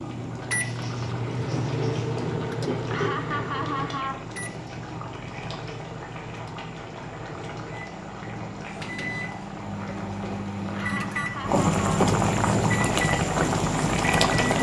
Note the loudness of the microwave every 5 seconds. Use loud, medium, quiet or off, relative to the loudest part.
loud, medium, loud.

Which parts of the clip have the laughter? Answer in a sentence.
The laughter can be heard from 2.8 to 4.2 s and from 10.7 to 12.1 s.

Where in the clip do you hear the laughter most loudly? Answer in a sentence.
The volume of the laughter peaks at 4 seconds.